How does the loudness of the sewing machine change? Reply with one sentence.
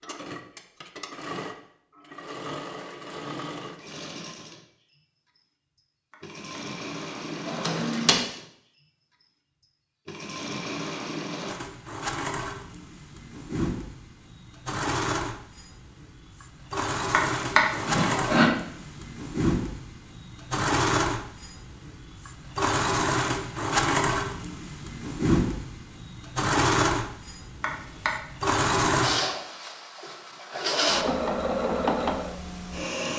The volume of the sewing machine goes up.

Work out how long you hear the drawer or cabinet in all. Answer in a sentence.
The drawer or cabinet can be heard for 3 seconds in total.